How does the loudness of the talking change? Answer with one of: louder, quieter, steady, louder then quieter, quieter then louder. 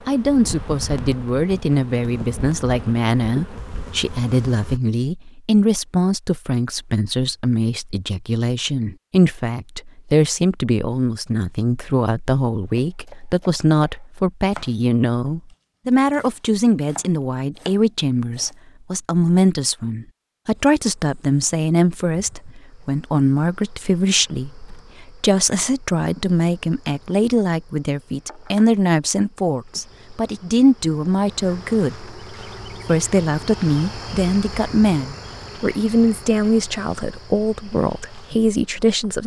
steady.